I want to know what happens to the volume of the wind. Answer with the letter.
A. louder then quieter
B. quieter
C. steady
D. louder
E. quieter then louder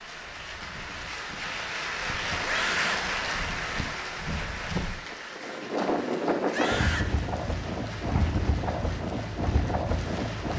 D.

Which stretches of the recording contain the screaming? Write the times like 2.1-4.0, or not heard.
2.4-3.0, 6.5-7.2.